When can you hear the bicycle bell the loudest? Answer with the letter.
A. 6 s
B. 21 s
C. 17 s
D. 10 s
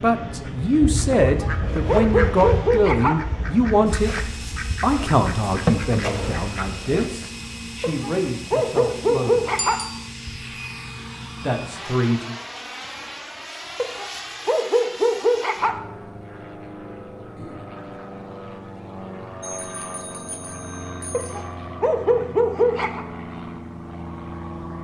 D.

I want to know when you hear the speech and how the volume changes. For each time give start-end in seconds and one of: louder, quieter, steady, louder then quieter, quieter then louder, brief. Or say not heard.
0.0-9.5 quieter
11.4-12.3 brief.